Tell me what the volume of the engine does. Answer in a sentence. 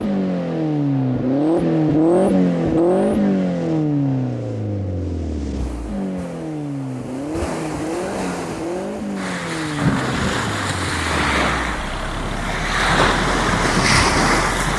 The volume of the engine goes down.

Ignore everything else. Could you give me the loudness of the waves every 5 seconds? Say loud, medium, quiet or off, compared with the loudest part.
quiet, medium, loud.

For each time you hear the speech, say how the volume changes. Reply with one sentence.
You can't hear the speech here.